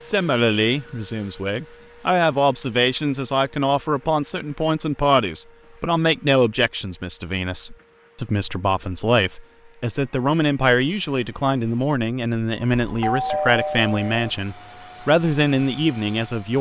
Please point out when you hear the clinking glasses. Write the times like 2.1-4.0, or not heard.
not heard.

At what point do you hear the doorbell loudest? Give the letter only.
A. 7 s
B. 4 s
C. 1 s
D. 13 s
D.